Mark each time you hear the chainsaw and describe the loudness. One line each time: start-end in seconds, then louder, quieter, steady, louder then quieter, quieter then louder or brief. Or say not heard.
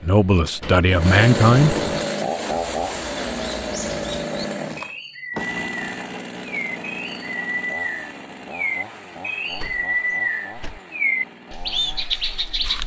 0.0-12.8 quieter.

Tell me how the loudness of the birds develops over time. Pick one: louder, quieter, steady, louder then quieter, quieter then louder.
louder.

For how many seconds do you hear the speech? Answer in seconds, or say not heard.
2 s.